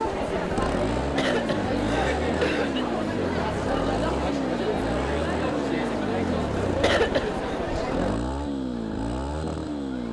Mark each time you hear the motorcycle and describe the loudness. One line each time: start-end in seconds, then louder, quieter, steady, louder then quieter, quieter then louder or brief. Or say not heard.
0.0-10.0 steady.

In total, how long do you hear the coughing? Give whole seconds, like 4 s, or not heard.
3 s.